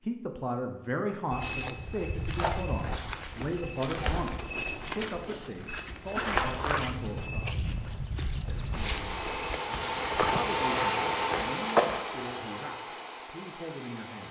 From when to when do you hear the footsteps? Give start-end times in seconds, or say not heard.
1.3-12.0.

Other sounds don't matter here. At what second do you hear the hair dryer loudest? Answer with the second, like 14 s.
11 s.